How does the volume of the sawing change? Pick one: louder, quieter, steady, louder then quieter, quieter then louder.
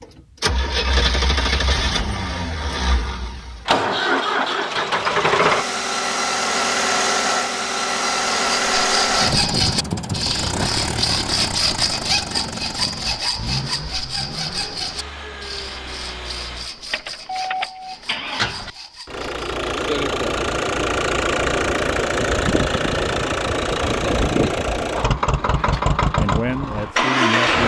quieter.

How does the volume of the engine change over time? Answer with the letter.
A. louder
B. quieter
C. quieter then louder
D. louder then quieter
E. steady
C.